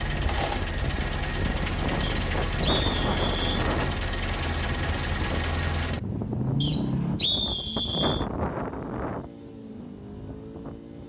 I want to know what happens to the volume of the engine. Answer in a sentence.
The loudness of the engine goes down.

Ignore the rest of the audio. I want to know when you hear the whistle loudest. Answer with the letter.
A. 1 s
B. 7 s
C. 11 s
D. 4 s
B.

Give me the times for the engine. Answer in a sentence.
The engine can be heard from 0.0 to 11.0 s.